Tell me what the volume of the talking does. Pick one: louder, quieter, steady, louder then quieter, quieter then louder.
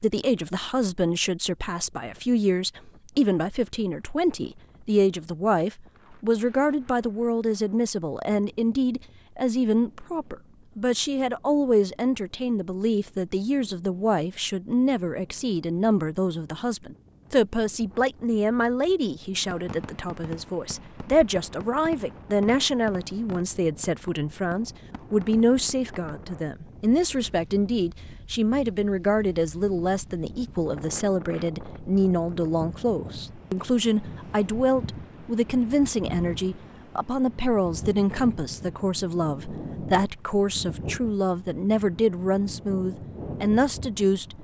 steady.